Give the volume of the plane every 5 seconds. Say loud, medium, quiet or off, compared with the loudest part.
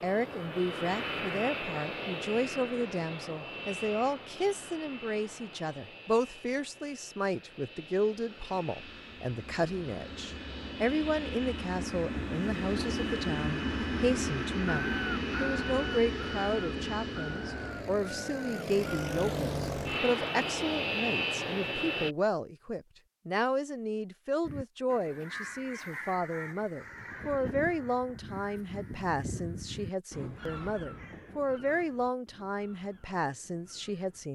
medium, quiet, loud, loud, loud, off, off.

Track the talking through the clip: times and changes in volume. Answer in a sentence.
The talking can be heard from 0.0 to 34.3 s, at a steady volume.